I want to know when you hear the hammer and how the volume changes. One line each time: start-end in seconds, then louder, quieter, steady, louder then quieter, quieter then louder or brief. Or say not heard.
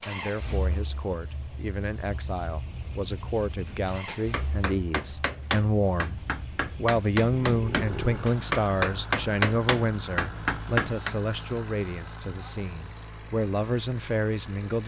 3.6-11.2 louder.